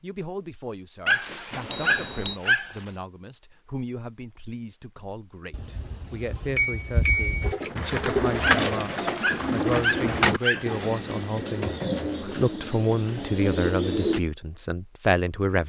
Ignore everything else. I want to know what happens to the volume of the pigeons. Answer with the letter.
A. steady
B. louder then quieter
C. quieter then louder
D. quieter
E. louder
D.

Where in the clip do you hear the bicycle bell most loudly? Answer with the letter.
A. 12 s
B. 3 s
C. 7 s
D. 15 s
C.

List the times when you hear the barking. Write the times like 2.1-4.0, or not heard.
1.1-2.9, 8.7-11.0.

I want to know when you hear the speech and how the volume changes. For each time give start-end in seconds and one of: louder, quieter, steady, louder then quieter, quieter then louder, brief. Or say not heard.
0.0-15.6 louder.